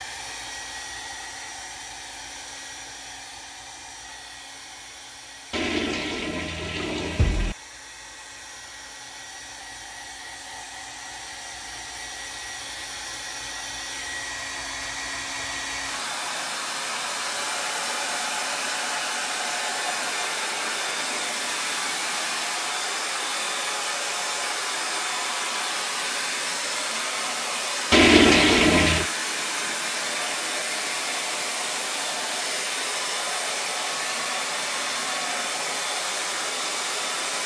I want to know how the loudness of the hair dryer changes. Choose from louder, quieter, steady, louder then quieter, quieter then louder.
louder.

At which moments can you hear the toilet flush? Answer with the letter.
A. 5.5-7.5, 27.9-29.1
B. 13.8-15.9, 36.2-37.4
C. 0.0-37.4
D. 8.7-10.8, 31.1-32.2
A.